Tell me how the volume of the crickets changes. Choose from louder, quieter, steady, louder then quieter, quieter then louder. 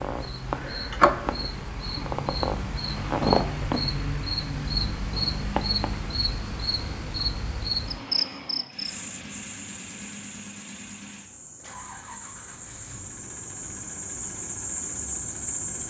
quieter then louder.